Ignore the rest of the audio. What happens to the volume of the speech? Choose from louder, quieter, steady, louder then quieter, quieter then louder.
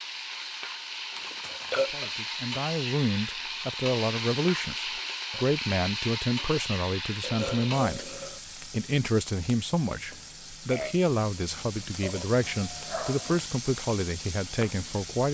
steady.